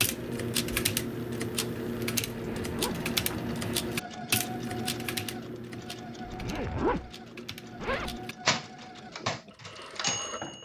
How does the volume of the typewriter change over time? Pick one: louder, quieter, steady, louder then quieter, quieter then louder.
quieter then louder.